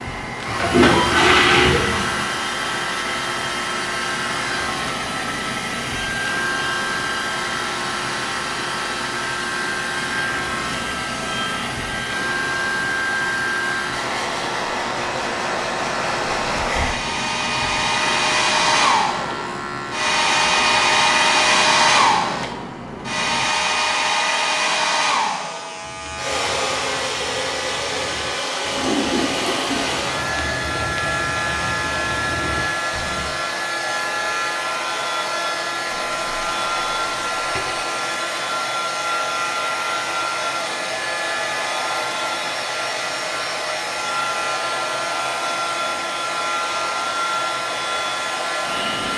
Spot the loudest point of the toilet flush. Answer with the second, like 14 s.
1 s.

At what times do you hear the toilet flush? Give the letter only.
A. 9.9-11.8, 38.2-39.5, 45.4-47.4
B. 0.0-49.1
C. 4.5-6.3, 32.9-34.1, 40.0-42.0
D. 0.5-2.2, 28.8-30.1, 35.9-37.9
D.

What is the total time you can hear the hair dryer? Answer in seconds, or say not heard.
49 s.